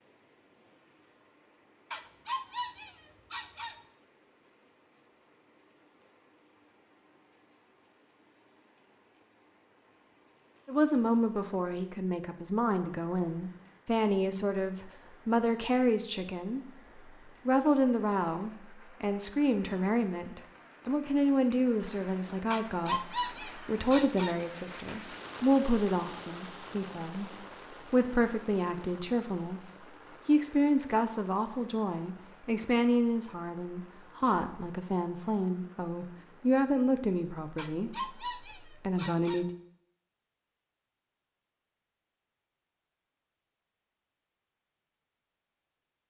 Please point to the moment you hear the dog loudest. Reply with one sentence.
The loudest moment of the dog is at 23 seconds.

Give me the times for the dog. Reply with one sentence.
The dog can be heard from 1.9 to 3.8 s, from 22.5 to 24.4 s and from 37.5 to 39.5 s.